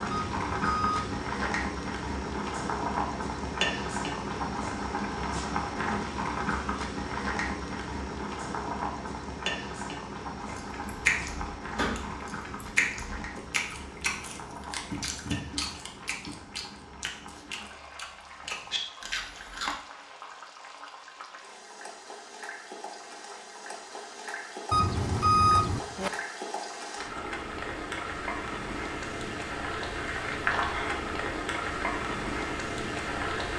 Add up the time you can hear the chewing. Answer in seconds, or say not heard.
9 s.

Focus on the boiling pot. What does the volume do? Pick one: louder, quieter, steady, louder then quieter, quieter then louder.
quieter then louder.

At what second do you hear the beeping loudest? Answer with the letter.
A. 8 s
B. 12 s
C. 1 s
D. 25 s
D.